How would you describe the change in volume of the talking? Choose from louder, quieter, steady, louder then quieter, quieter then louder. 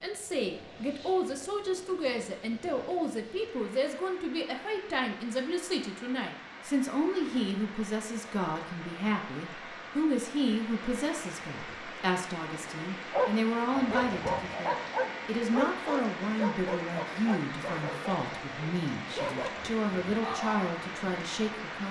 steady.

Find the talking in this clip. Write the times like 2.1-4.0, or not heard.
0.0-21.8.